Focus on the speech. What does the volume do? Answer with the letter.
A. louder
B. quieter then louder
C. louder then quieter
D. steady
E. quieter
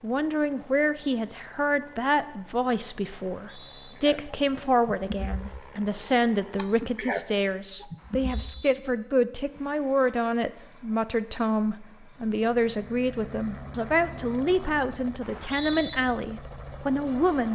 D.